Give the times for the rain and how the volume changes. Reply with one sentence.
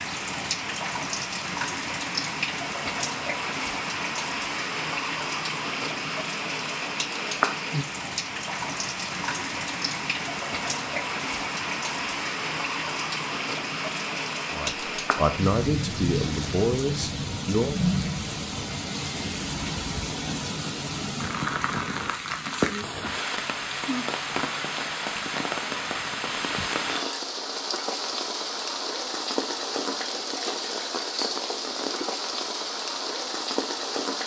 You can hear the rain from 0.0 to 34.2 s, at a steady volume.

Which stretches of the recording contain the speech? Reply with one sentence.
You can hear the speech from 14.5 to 17.8 s.